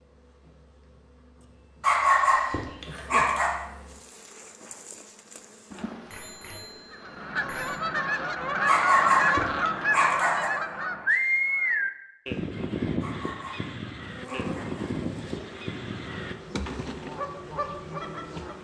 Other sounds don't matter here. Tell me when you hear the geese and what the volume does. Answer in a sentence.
You can hear the geese from 6.9 to 18.6 s, getting quieter.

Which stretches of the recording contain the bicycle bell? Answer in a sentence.
The bicycle bell can be heard from 6.1 to 7.8 s.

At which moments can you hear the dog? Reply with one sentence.
You can hear the dog from 1.8 to 3.5 s, from 8.7 to 10.5 s and from 13.0 to 14.9 s.